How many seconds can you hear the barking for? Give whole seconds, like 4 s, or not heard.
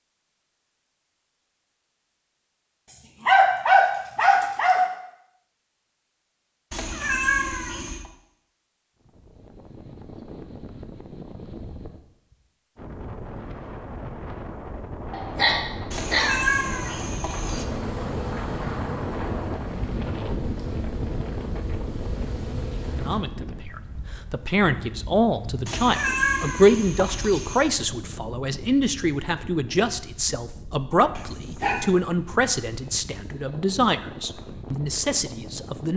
4 s.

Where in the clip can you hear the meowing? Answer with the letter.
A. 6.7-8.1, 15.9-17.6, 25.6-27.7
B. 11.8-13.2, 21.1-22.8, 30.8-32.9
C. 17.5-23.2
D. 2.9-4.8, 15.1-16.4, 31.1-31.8
A.